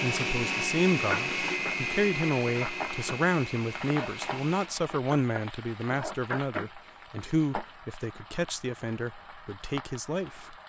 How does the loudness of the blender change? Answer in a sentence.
The volume of the blender goes down.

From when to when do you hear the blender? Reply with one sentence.
The blender can be heard from 0.0 to 4.7 s.